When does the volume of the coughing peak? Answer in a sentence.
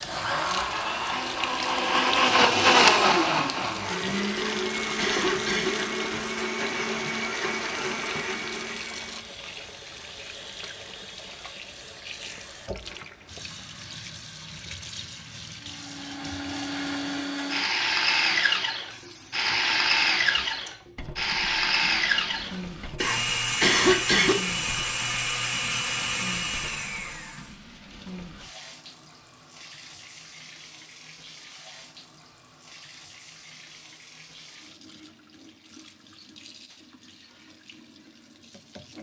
The volume of the coughing peaks at 24 seconds.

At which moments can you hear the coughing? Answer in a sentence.
You can hear the coughing from 4.3 to 5.7 s and from 23.0 to 24.4 s.